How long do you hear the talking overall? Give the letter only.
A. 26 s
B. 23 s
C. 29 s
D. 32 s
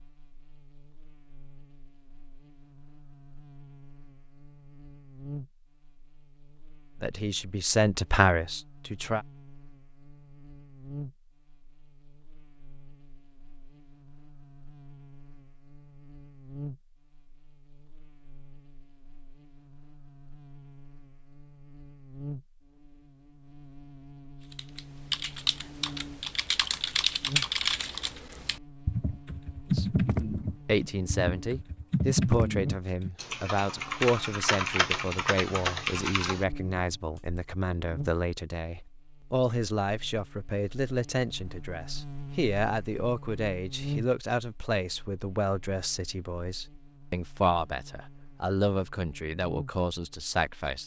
B.